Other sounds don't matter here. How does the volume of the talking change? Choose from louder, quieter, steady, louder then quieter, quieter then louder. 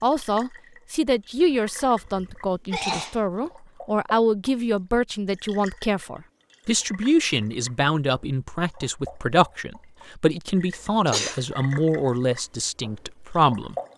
steady.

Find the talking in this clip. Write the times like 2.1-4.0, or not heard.
0.0-13.8.